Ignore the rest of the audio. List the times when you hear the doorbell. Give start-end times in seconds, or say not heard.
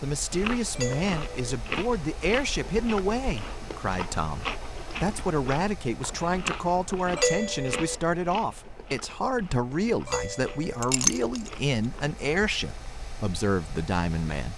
0.8-1.6, 7.2-8.0, 10.1-10.8.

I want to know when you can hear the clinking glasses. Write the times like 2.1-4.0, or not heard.
10.8-11.5.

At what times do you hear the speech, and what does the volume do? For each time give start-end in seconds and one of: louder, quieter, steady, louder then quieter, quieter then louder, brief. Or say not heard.
0.0-14.5 steady.